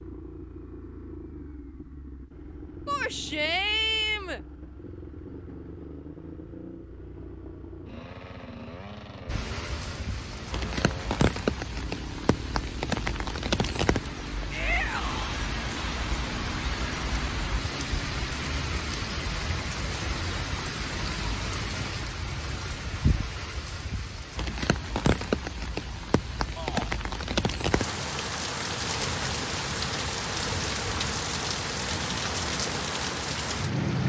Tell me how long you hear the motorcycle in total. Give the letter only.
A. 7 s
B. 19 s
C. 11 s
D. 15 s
B.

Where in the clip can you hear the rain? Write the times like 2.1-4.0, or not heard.
9.2-34.0.